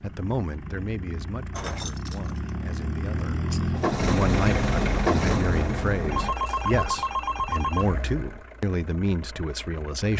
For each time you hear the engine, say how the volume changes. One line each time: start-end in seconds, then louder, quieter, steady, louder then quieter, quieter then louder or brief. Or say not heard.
0.0-10.1 louder then quieter.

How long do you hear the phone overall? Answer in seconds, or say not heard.
2 s.